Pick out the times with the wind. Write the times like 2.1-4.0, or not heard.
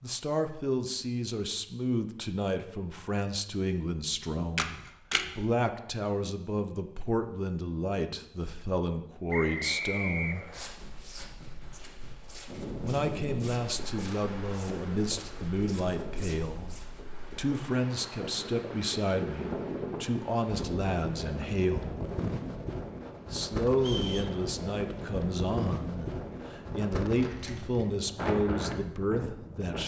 12.4-29.8.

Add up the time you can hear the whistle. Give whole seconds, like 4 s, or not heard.
2 s.